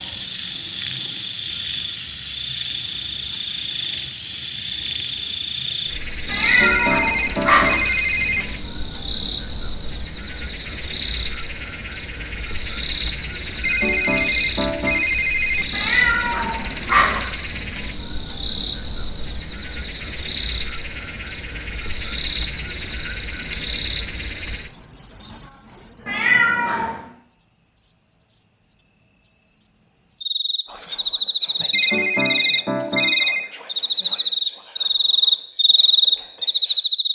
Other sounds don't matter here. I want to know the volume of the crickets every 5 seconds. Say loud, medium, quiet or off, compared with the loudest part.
medium, medium, medium, medium, medium, medium, medium, loud.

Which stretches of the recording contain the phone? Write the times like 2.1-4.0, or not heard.
6.4-8.4, 13.6-15.7, 31.7-33.5.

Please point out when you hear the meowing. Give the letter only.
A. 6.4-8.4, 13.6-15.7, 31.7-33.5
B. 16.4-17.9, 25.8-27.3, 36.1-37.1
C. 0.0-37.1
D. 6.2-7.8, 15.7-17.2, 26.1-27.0
D.